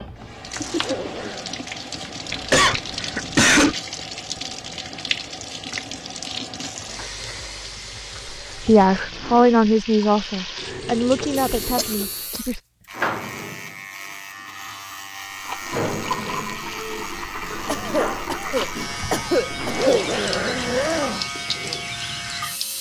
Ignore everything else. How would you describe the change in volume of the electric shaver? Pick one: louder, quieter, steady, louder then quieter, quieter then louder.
steady.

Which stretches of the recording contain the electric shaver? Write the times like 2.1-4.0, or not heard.
11.3-22.7.